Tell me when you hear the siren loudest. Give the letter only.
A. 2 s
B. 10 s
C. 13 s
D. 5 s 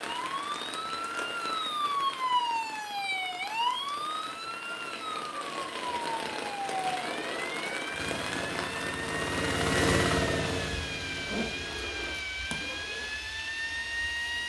A.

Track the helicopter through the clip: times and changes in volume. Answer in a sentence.
The helicopter can be heard from 7.0 to 12.2 s, getting louder then quieter.